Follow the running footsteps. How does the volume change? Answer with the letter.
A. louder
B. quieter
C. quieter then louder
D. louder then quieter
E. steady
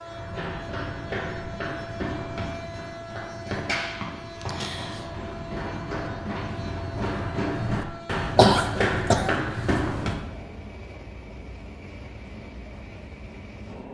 A.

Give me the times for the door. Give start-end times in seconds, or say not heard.
not heard.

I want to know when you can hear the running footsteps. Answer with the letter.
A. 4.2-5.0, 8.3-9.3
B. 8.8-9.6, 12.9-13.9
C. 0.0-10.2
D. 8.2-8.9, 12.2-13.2
C.